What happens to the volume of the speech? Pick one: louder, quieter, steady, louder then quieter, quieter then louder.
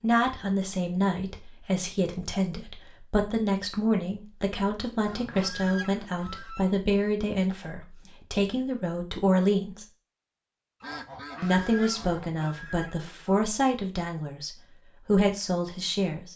steady.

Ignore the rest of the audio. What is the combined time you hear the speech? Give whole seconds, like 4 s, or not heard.
15 s.